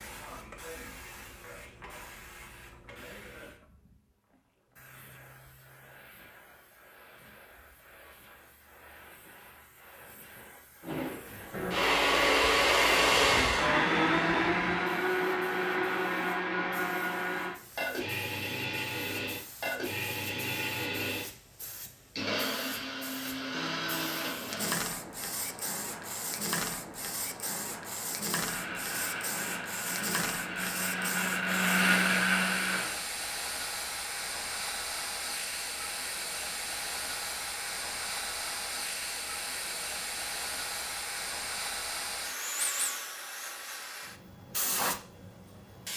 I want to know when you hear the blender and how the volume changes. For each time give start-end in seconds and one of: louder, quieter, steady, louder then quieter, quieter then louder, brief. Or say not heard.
10.8-24.8 quieter
28.4-33.0 louder.